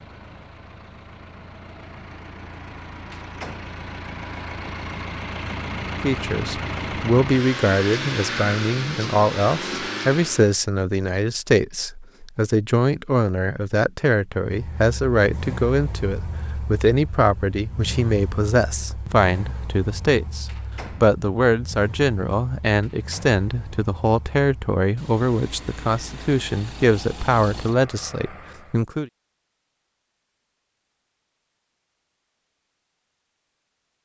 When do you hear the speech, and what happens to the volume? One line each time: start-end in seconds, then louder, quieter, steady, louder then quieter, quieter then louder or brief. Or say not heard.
6.0-29.1 steady.